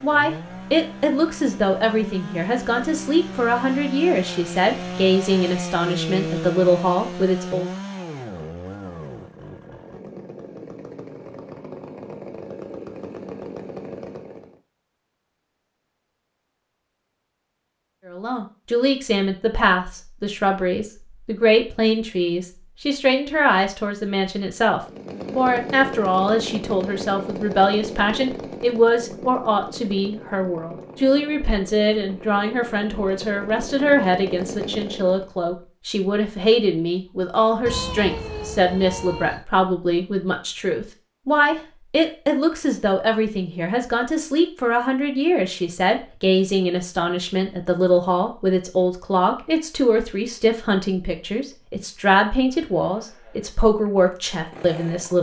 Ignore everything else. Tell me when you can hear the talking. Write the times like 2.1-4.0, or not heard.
0.0-7.7, 18.1-55.1.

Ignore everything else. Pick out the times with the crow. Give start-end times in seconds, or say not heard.
not heard.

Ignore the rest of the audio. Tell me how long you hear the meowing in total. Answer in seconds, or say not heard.
2 s.